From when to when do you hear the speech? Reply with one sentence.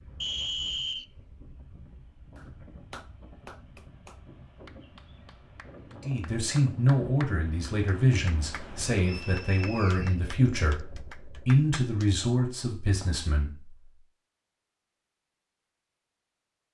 The speech can be heard from 6.0 to 13.8 s.